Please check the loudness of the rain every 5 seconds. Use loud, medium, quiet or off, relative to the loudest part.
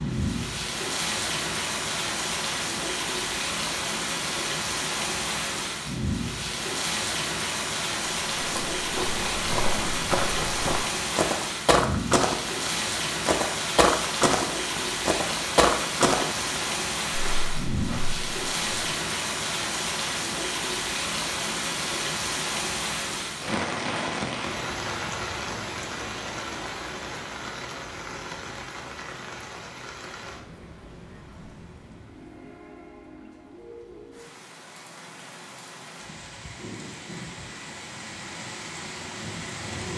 loud, loud, loud, loud, loud, medium, quiet, medium.